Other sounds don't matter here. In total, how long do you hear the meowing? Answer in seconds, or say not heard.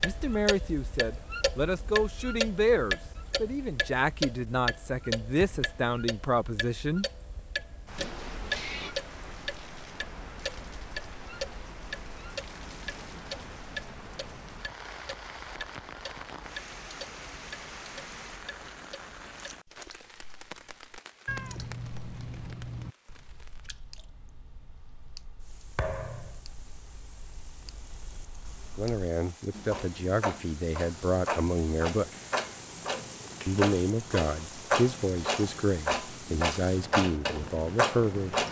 3 s.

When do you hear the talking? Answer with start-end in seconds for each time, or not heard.
0.0-7.0, 28.8-32.1, 33.5-38.4.